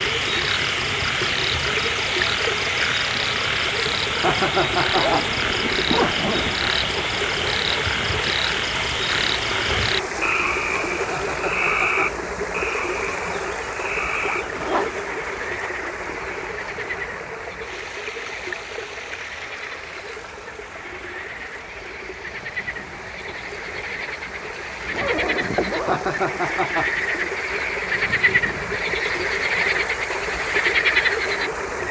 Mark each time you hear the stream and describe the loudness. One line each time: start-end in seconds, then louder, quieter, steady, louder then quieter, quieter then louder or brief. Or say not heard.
0.0-31.8 quieter then louder.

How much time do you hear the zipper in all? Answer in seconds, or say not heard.
4 s.